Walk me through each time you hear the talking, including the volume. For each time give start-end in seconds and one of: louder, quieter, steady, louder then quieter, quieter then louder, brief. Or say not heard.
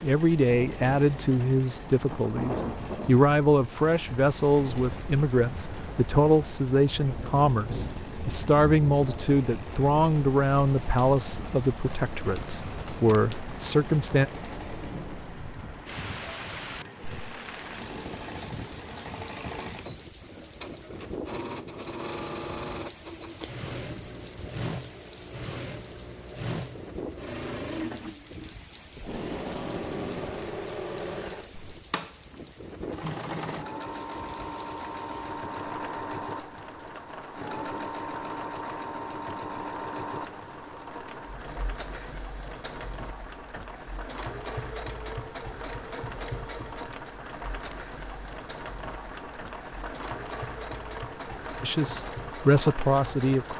0.0-14.2 steady
51.6-53.5 brief.